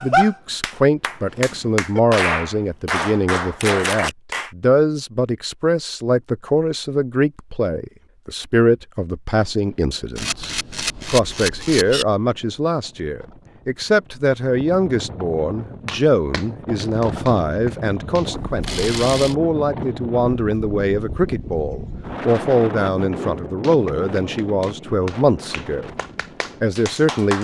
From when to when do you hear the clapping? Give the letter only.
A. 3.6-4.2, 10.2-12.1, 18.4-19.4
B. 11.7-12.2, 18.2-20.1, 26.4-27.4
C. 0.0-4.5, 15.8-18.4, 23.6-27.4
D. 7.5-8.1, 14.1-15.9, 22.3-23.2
C.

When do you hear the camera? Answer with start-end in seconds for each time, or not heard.
3.6-4.2, 10.2-12.1, 18.4-19.4.